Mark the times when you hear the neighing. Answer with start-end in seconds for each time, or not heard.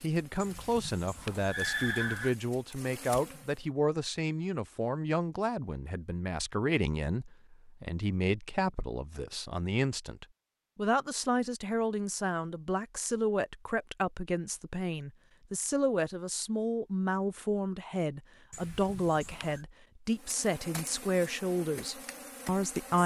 0.4-2.4, 18.5-19.6.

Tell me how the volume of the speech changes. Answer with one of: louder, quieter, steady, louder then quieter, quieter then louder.
steady.